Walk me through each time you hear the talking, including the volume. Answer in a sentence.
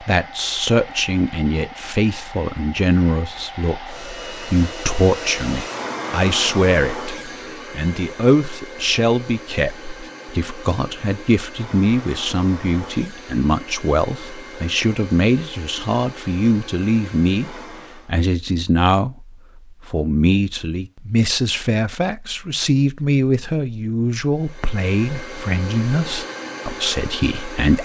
The talking can be heard from 0.0 to 27.8 s, at a steady volume.